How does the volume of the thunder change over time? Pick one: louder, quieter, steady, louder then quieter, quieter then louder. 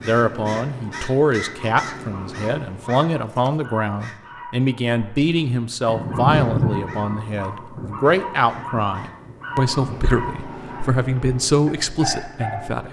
quieter.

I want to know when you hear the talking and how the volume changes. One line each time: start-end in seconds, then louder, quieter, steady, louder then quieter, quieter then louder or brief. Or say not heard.
0.0-12.8 steady.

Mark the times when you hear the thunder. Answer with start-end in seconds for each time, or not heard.
5.8-10.1.